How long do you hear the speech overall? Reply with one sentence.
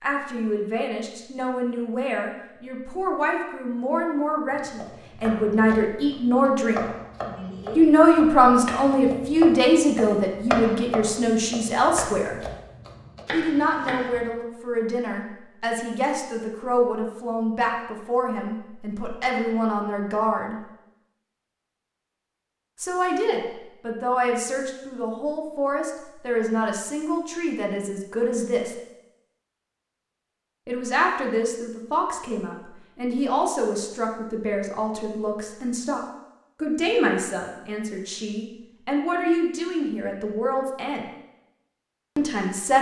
The speech can be heard for 36 seconds in total.